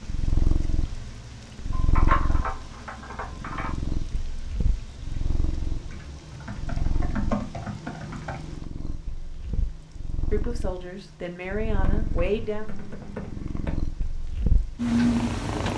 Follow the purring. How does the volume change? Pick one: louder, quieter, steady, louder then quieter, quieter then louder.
quieter then louder.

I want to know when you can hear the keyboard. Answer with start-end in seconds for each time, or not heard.
1.7-3.8, 5.9-8.4, 11.8-13.8.